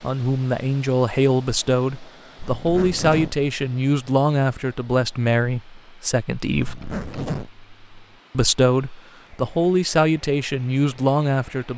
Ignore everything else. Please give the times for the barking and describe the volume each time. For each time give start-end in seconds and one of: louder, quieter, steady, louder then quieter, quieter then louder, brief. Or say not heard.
not heard.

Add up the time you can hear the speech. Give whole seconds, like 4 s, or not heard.
10 s.